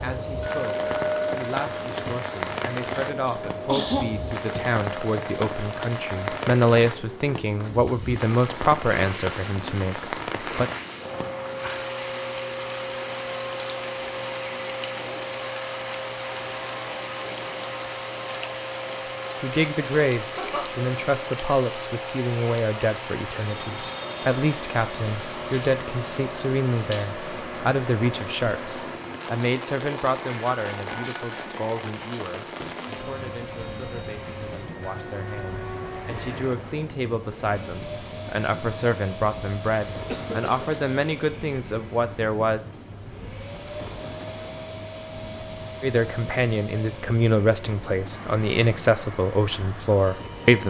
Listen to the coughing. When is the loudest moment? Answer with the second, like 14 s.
4 s.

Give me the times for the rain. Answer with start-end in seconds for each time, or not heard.
0.0-50.6.